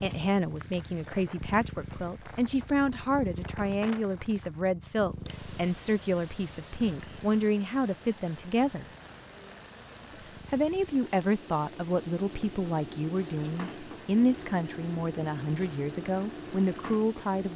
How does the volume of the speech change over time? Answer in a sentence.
The loudness of the speech stays about the same.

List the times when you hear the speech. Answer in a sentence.
You can hear the speech from 0.0 to 8.8 s and from 10.1 to 17.5 s.